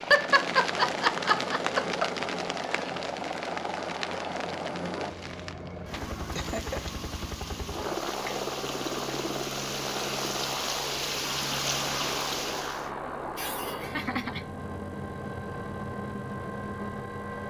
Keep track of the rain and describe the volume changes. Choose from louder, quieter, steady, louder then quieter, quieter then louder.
quieter then louder.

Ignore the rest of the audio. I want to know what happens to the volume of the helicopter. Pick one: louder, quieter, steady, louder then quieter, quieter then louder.
steady.